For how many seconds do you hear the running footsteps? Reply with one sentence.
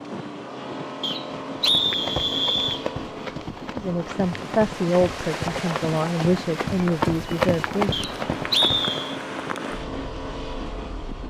The running footsteps can be heard for 7 seconds in total.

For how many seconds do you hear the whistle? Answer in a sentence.
You can hear the whistle for 3 seconds altogether.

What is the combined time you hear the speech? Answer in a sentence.
The speech can be heard for 4 seconds in total.